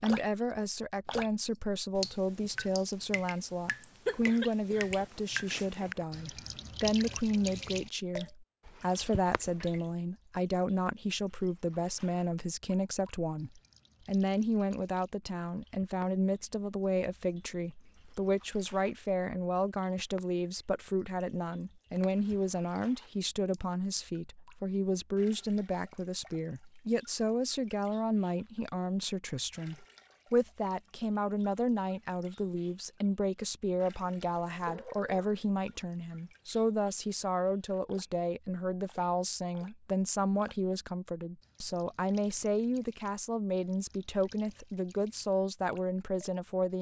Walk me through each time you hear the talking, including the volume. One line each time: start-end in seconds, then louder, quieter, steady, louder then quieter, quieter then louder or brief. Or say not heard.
0.0-46.7 steady.